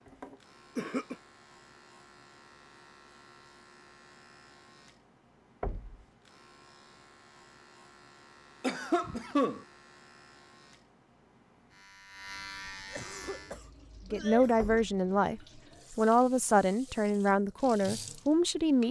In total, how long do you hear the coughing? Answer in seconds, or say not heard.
4 s.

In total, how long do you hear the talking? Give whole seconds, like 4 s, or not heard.
5 s.